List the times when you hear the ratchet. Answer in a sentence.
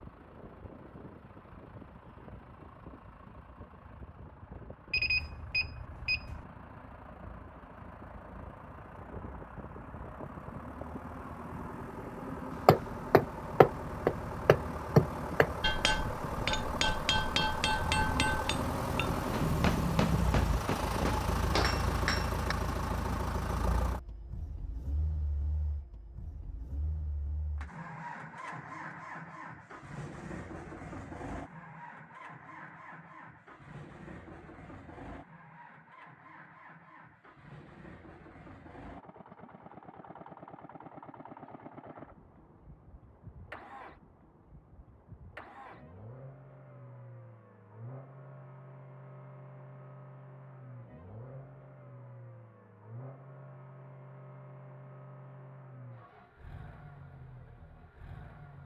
The ratchet can't be heard in this clip.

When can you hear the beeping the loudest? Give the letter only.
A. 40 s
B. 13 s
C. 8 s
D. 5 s
D.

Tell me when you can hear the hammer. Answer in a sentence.
The hammer can be heard from 12.7 to 22.6 s.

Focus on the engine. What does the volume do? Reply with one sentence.
The volume of the engine goes up, then down.